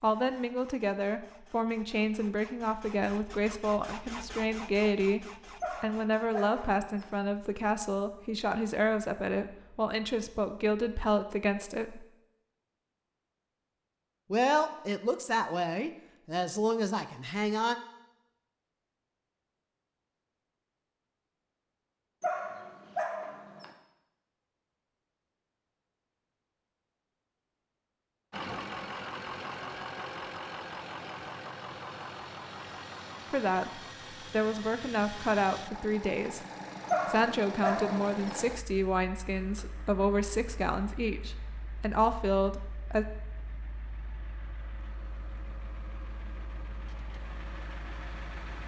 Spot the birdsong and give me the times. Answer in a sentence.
You can't hear the birdsong here.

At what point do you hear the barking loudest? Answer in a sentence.
The volume of the barking peaks at 37 seconds.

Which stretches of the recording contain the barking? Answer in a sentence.
You can hear the barking from 5.6 to 7.1 s, from 22.2 to 23.7 s and from 36.9 to 38.4 s.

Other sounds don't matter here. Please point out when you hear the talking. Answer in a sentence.
You can hear the talking from 0.0 to 12.1 s, from 14.3 to 17.8 s, from 33.3 to 36.5 s and from 37.0 to 43.0 s.